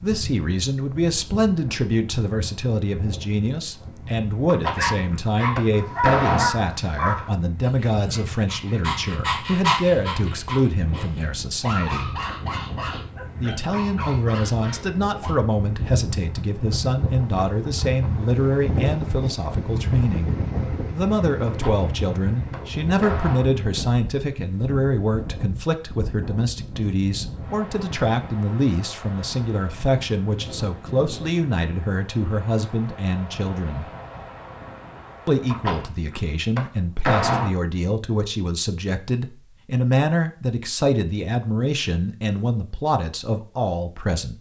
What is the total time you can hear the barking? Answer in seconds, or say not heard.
11 s.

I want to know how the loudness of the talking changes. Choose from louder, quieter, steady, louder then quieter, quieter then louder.
steady.